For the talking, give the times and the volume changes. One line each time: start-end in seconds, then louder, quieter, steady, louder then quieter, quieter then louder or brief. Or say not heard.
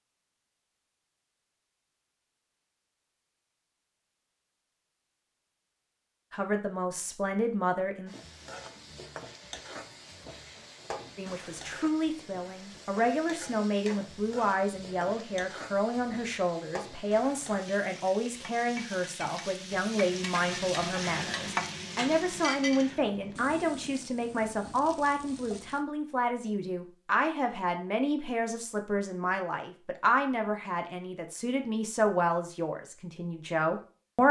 6.3-8.2 brief
11.2-34.2 steady.